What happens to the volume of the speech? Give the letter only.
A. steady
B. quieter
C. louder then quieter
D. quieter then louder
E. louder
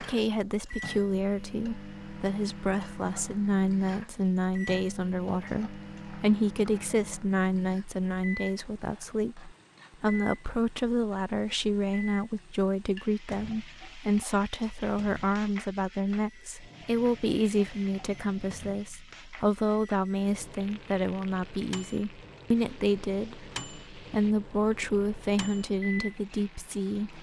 A.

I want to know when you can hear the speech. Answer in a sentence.
You can hear the speech from 0.0 to 27.1 s.